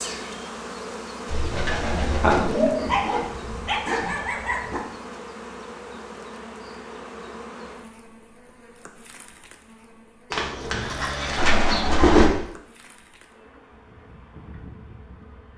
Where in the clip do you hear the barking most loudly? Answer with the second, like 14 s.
3 s.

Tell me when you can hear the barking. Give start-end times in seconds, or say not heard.
2.8-4.8.